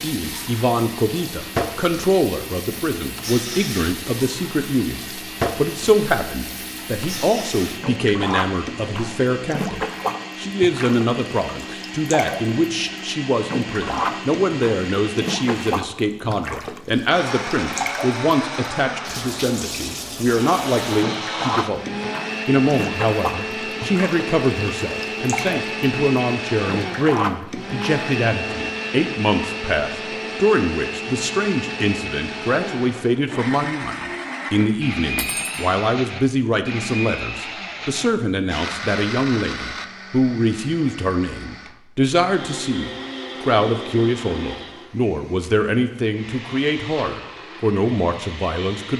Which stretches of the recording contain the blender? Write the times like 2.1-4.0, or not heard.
0.0-48.9.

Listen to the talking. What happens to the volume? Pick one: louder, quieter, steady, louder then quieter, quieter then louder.
steady.